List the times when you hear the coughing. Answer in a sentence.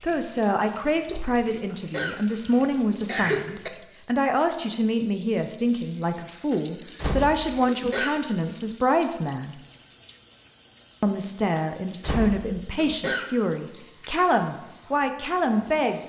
The coughing can be heard from 1.8 to 3.7 s, from 7.7 to 8.2 s and from 12.8 to 13.3 s.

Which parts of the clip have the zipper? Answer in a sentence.
You can't hear the zipper here.